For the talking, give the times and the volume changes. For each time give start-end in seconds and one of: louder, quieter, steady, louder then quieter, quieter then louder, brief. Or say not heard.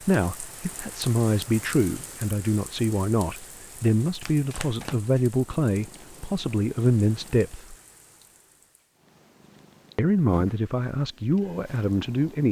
0.1-7.8 steady
9.9-12.4 brief.